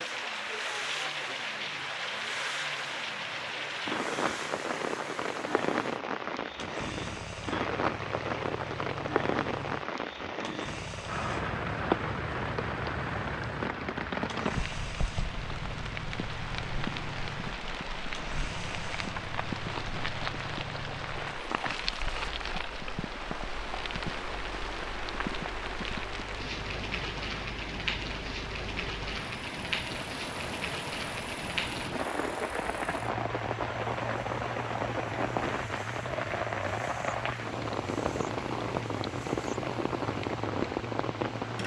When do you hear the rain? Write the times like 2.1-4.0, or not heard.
0.0-41.6.